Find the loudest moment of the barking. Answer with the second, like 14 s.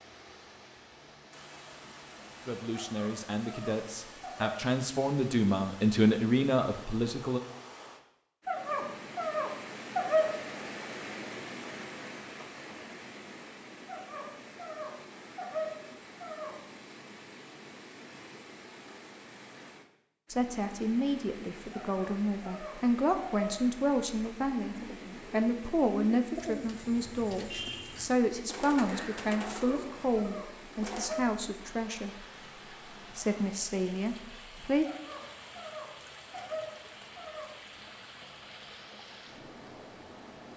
10 s.